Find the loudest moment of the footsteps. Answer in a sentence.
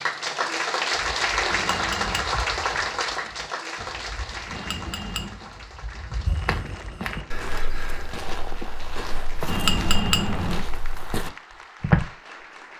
The loudest moment of the footsteps is at 12 seconds.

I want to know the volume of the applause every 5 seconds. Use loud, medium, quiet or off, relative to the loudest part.
loud, quiet, quiet.